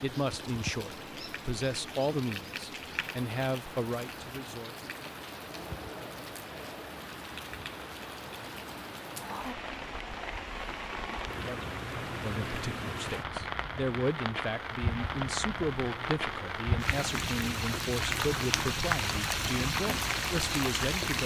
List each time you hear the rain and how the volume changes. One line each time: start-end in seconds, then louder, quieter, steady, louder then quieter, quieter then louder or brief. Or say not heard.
0.0-21.2 louder.